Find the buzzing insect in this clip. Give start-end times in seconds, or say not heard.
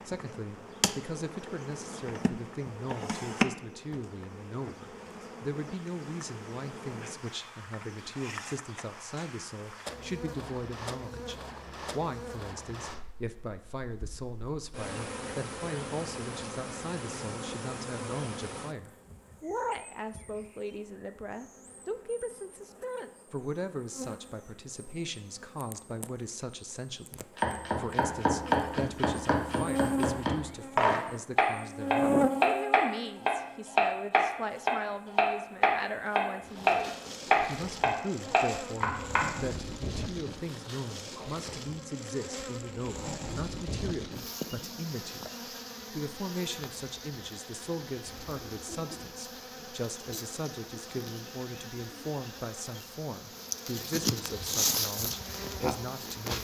0.0-56.3.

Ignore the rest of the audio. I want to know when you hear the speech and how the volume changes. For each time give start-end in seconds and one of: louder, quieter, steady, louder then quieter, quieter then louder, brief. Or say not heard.
0.1-56.3 steady.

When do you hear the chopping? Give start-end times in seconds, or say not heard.
27.4-39.2.